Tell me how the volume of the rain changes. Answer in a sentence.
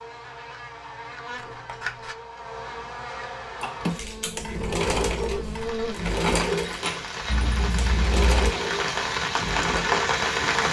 The loudness of the rain goes up.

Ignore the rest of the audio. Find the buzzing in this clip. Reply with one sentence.
The buzzing can be heard from 0.0 to 6.0 s.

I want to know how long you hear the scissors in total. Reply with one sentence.
You can hear the scissors for 2 seconds altogether.